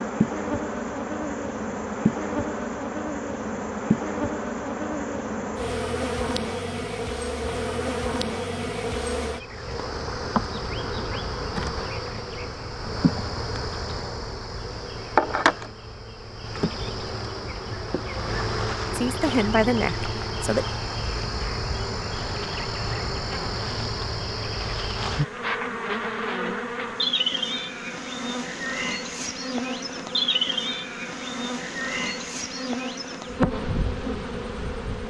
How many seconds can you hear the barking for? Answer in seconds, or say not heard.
not heard.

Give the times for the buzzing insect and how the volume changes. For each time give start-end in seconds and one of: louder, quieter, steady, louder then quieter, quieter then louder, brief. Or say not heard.
0.0-35.0 steady.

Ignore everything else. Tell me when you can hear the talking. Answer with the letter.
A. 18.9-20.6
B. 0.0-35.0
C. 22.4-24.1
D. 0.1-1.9
A.